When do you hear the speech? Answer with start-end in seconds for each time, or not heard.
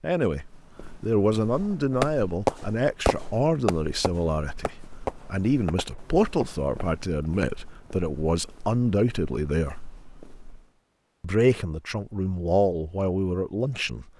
0.0-9.8, 11.2-14.1.